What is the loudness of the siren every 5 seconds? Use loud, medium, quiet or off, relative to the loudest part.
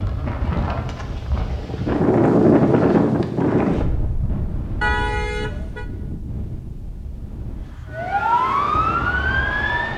off, loud.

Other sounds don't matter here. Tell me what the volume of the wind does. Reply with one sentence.
The loudness of the wind goes up, then down.